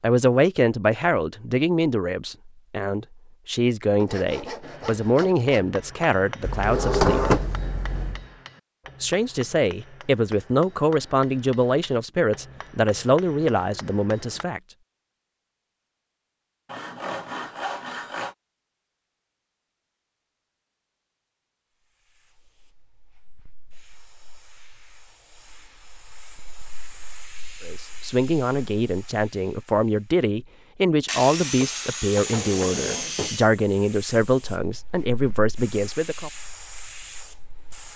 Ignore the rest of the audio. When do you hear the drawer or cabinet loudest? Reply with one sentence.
The loudest moment of the drawer or cabinet is at 7 seconds.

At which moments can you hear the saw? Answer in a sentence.
The saw can be heard from 4.0 to 5.7 s, from 16.6 to 18.4 s and from 31.1 to 33.5 s.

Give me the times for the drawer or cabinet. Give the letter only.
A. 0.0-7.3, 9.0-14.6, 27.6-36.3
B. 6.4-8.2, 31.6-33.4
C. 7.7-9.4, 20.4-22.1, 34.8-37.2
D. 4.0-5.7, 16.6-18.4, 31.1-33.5
B.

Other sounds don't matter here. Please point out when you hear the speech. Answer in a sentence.
You can hear the speech from 0.0 to 7.3 s, from 9.0 to 14.6 s and from 27.6 to 36.3 s.